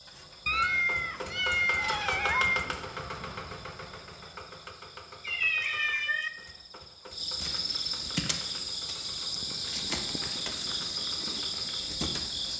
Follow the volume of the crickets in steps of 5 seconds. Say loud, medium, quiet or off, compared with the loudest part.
quiet, loud, loud.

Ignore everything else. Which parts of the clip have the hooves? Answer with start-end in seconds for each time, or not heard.
not heard.